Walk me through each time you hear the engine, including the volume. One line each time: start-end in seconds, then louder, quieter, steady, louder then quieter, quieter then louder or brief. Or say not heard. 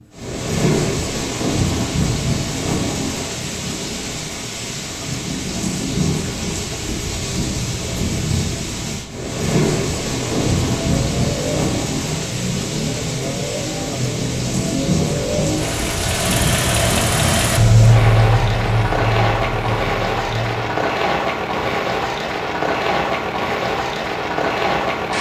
10.1-20.7 louder then quieter.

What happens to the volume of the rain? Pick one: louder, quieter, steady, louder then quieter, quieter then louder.
steady.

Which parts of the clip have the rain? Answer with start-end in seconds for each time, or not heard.
0.0-25.1.